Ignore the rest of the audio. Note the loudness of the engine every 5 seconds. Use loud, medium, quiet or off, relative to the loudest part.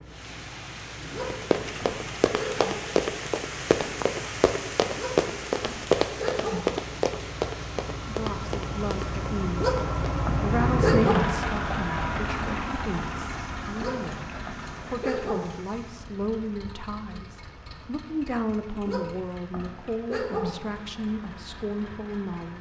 quiet, medium, loud, quiet, quiet.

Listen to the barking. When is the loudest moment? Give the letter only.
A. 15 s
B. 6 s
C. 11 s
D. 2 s
C.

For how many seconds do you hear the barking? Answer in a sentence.
The barking can be heard for 9 seconds in total.